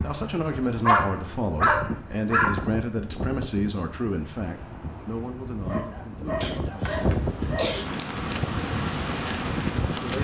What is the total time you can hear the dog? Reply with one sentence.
The dog can be heard for 4 seconds in total.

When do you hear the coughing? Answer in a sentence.
The coughing can be heard from 6.4 to 7.8 s.